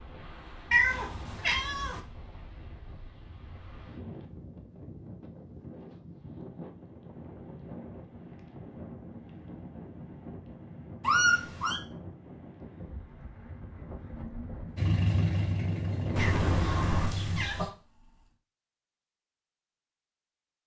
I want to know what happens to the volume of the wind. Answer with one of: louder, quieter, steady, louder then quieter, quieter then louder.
louder.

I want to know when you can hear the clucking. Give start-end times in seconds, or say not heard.
16.1-17.7.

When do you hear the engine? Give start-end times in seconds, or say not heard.
14.8-17.5.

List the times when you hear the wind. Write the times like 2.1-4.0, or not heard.
0.0-16.9.